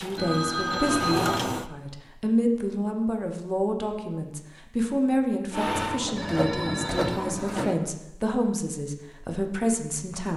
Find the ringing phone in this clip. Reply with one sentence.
The ringing phone can be heard from 0.1 to 1.4 s and from 6.2 to 7.2 s.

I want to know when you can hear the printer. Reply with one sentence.
You can hear the printer from 0.0 to 1.6 s and from 5.5 to 7.8 s.